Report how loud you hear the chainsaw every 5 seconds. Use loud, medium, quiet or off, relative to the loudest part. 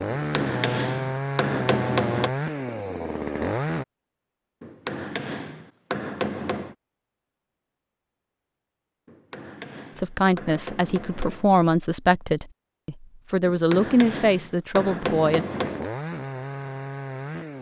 loud, off, off, medium.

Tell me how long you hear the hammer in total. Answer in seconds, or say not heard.
9 s.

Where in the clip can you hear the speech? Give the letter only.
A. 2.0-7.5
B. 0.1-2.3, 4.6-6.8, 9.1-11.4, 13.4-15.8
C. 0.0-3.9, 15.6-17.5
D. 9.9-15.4
D.